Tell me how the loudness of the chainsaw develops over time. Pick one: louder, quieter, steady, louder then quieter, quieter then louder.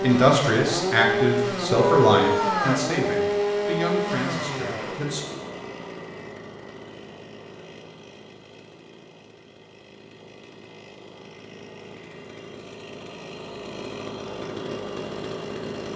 quieter then louder.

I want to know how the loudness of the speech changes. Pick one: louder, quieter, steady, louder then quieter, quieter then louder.
quieter.